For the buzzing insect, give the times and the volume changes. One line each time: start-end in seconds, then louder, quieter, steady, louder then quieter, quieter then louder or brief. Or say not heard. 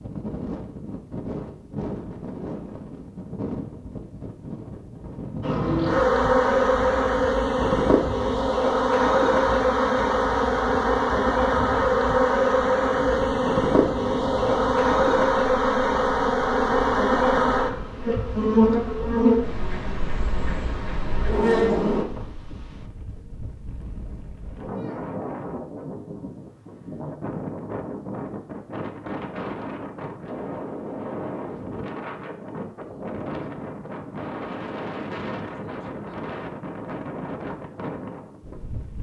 5.4-22.1 steady.